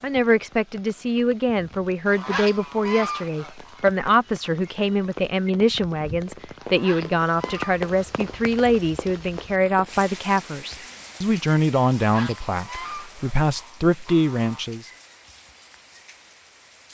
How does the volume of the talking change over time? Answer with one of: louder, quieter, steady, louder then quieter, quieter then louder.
steady.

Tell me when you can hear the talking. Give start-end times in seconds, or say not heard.
0.0-14.9.